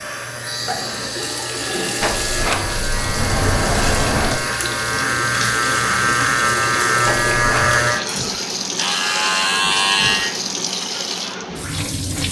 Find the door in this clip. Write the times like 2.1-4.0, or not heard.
2.0-4.4, 7.0-7.8.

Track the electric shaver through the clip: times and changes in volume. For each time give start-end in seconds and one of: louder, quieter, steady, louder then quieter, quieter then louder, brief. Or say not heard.
0.0-10.3 louder.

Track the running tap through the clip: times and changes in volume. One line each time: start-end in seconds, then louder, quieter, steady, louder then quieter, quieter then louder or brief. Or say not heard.
0.0-12.2 steady.